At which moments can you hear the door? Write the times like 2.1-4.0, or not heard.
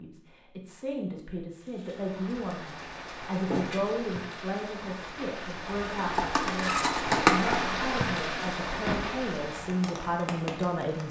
3.3-4.0, 8.8-9.2.